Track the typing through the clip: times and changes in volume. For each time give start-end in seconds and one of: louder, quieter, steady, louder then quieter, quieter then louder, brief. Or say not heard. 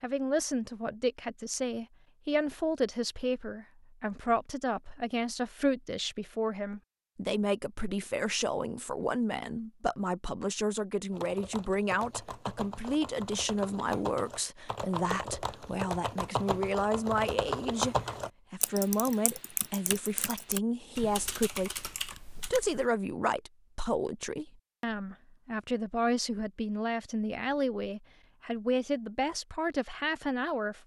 11.1-22.9 louder then quieter.